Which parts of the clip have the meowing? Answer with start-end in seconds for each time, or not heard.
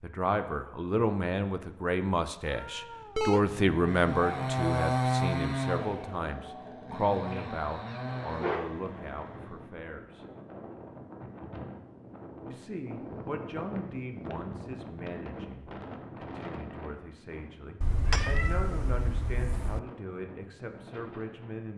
2.5-3.4, 7.3-8.8, 17.8-19.8.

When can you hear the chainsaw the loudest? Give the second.
5 s.